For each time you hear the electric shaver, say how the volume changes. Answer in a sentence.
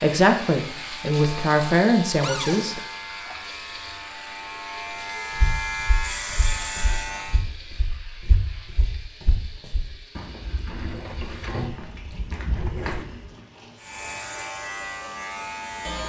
The electric shaver can be heard from 0.0 to 7.5 s, getting louder; and briefly from 13.8 to 16.0 s.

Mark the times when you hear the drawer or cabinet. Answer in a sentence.
You can hear the drawer or cabinet from 2.2 to 2.6 s and from 10.7 to 13.1 s.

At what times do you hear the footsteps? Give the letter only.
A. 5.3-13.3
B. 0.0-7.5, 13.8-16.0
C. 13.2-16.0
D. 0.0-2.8
A.